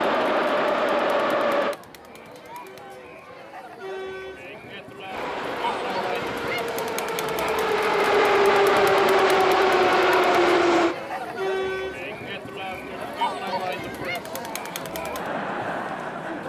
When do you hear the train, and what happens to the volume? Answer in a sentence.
The train can be heard briefly from 0.0 to 1.8 s; and from 5.0 to 10.9 s, getting louder.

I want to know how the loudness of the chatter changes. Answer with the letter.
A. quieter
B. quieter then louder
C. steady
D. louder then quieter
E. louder
E.